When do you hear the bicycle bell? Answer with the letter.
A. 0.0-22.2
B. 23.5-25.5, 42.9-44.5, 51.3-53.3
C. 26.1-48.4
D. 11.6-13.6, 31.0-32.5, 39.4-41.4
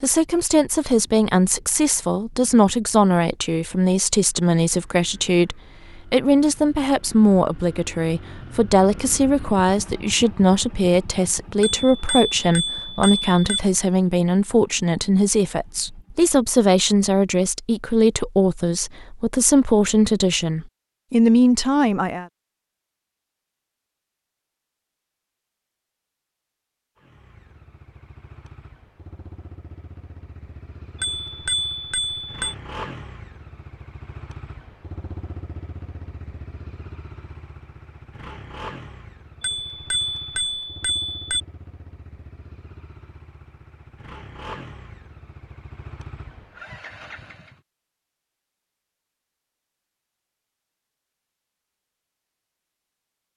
D.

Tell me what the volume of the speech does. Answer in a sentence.
The volume of the speech stays about the same.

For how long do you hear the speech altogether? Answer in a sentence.
You can hear the speech for 22 seconds altogether.